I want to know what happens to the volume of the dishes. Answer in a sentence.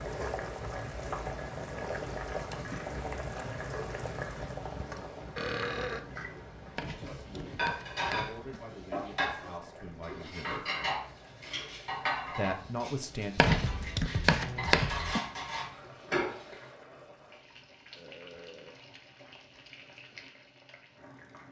The loudness of the dishes goes down, then up.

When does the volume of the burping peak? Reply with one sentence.
The volume of the burping peaks at 6 seconds.